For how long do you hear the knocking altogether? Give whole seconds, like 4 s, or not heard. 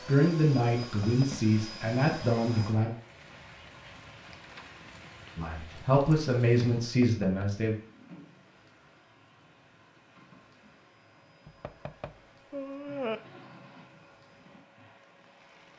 3 s.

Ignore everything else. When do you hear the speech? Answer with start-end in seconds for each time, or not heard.
0.1-2.9, 5.3-7.8.